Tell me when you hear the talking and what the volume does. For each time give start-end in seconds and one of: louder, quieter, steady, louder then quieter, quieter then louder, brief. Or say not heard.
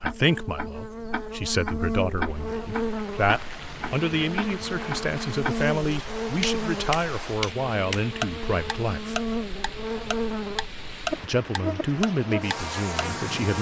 0.0-9.2 steady
11.2-13.5 brief.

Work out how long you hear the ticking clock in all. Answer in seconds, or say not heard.
13 s.